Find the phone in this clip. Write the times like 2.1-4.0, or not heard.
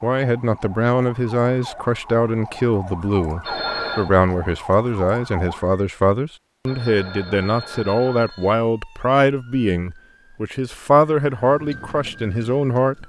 3.4-4.1, 6.7-8.6.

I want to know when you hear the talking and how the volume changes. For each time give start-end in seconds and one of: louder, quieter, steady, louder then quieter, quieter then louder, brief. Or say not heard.
0.0-13.0 steady.